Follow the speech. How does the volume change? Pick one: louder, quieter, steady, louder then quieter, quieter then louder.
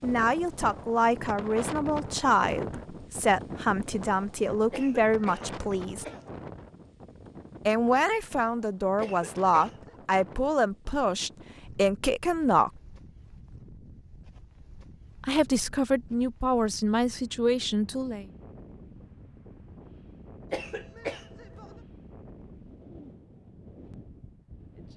steady.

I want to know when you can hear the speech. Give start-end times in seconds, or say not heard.
0.0-6.0, 7.7-12.7, 15.2-18.2.